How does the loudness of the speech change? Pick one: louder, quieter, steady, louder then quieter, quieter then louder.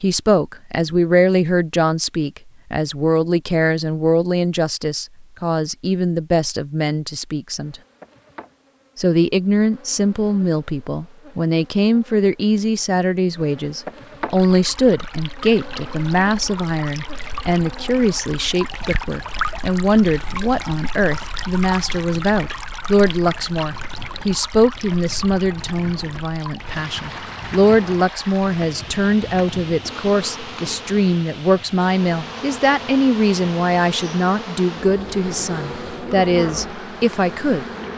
steady.